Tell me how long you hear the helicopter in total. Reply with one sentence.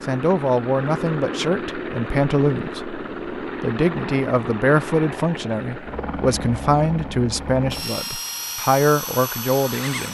You can hear the helicopter for 10 seconds altogether.